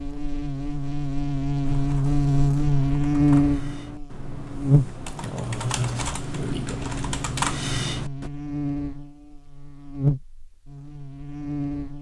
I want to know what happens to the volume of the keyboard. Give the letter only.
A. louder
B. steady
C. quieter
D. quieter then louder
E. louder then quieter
A.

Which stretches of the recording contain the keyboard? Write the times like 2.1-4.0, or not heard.
1.6-8.3.